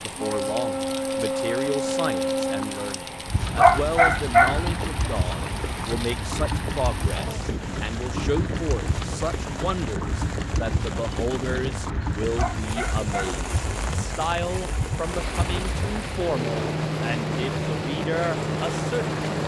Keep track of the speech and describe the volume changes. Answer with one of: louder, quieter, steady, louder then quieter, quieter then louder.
steady.